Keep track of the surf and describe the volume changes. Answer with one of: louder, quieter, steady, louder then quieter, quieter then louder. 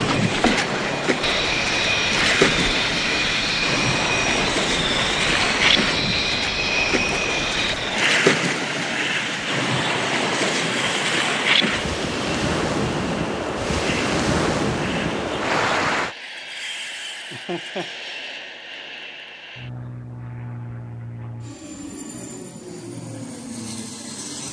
steady.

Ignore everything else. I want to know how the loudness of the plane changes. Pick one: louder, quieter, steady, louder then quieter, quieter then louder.
quieter.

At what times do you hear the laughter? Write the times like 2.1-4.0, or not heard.
17.3-17.9.